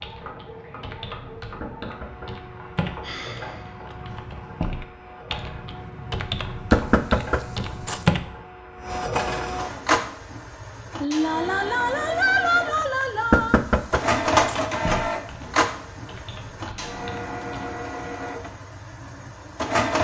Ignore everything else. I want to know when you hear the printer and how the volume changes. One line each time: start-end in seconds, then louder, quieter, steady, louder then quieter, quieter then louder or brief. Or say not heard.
0.0-19.9 louder then quieter.